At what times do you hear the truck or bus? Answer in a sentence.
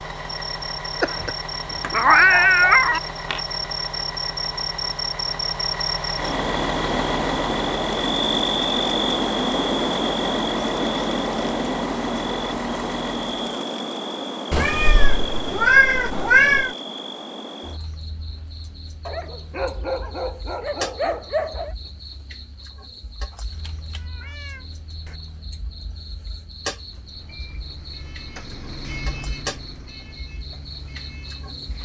The truck or bus can be heard from 0.0 to 13.4 s and from 26.9 to 31.8 s.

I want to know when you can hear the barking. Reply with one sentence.
The barking can be heard from 1.8 to 3.4 s and from 19.1 to 21.8 s.